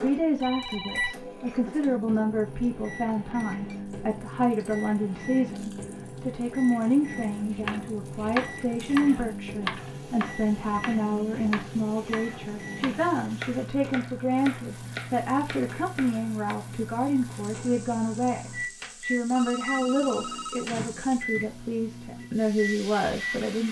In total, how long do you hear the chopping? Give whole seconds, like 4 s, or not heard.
9 s.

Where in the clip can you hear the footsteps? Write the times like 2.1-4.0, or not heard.
not heard.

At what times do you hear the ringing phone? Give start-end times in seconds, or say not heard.
0.4-1.1, 19.4-20.7.